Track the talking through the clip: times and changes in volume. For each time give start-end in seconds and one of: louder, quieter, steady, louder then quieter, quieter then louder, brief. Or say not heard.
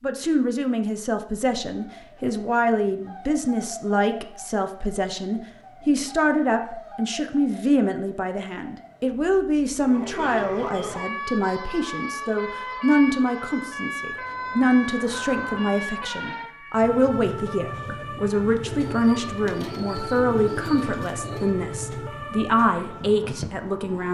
0.0-24.0 steady.